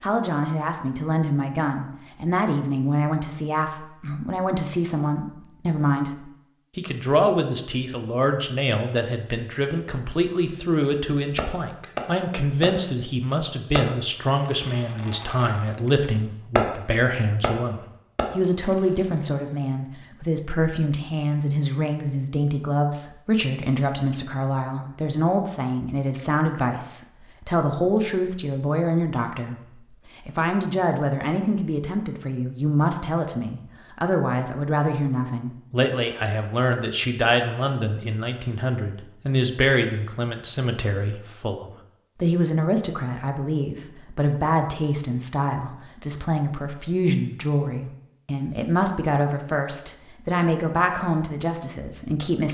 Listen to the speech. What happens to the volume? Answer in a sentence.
The loudness of the speech stays about the same.